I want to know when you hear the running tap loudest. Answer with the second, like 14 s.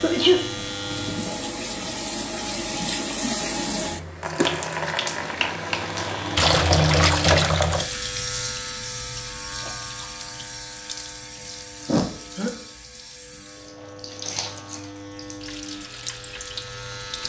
7 s.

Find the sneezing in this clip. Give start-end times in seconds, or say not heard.
0.0-0.5, 11.8-12.5.